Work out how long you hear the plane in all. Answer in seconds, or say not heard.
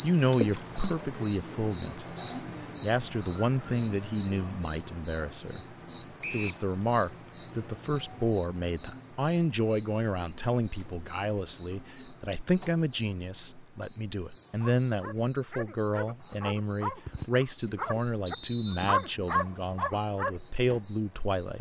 not heard.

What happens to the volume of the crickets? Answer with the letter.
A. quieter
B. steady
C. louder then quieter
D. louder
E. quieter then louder
A.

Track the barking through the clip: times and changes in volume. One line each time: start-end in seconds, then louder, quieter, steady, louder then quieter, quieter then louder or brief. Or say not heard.
14.6-20.4 louder.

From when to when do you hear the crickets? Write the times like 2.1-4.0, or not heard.
0.0-21.5.